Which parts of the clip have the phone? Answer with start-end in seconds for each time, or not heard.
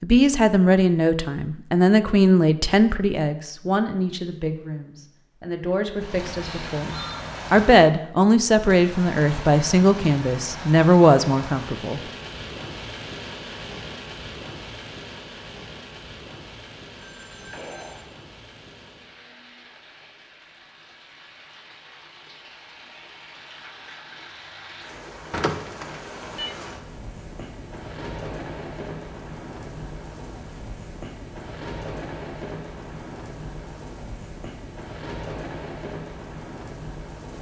6.4-7.2, 16.9-18.1, 25.3-26.6.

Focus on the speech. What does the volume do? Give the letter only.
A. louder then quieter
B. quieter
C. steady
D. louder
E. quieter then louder
E.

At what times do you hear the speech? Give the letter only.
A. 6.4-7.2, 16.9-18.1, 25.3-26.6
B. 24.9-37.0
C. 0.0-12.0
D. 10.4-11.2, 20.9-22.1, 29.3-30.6
C.